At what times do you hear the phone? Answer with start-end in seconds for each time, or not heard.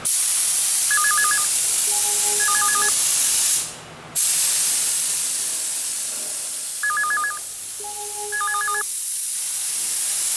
0.9-2.9, 6.8-8.8.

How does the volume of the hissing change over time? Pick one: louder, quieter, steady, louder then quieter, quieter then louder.
quieter.